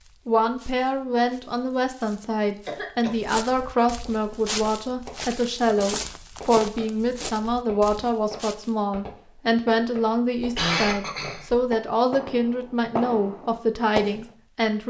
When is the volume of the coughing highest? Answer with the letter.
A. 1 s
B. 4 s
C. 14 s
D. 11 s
D.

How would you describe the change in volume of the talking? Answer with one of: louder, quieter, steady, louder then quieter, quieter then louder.
steady.